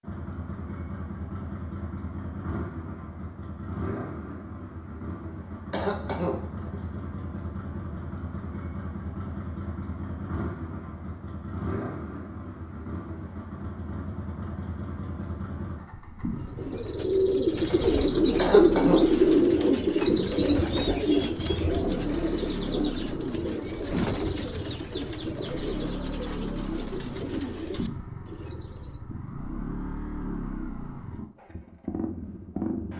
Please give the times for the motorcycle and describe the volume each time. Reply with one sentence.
The motorcycle can be heard from 0.0 to 32.9 s, at a steady volume.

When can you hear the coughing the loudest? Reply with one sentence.
The loudest moment of the coughing is at 19 seconds.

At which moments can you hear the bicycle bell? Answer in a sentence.
The bicycle bell can't be heard in this clip.